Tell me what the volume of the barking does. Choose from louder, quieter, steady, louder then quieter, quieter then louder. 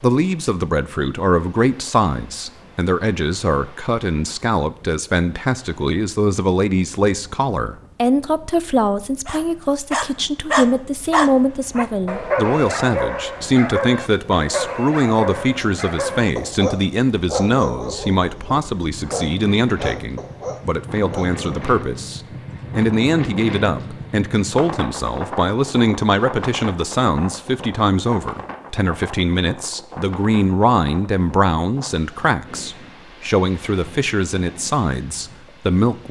quieter.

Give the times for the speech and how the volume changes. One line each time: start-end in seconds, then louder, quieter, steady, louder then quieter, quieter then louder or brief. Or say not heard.
0.0-36.0 steady.